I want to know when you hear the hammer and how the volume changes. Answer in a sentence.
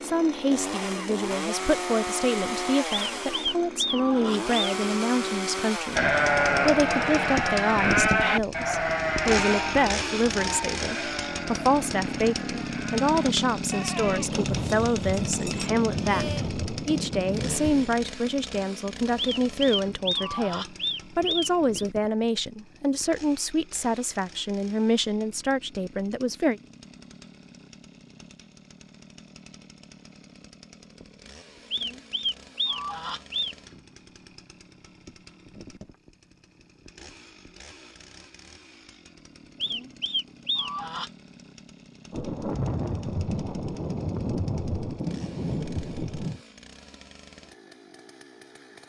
The hammer can't be heard in this clip.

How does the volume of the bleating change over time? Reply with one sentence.
The volume of the bleating goes down.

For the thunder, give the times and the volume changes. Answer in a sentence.
You can hear the thunder from 14.0 to 18.0 s, at a steady volume; and from 42.1 to 46.4 s, at a steady volume.